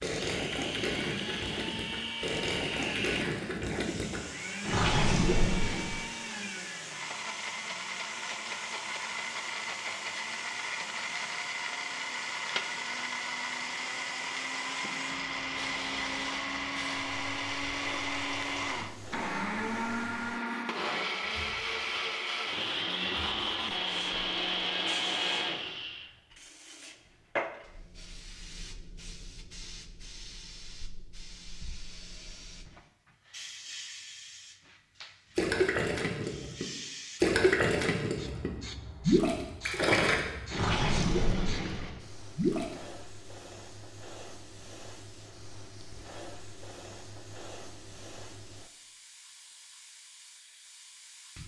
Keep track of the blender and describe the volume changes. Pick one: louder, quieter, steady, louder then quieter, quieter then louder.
louder.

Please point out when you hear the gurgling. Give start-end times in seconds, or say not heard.
0.0-6.0, 35.4-42.6.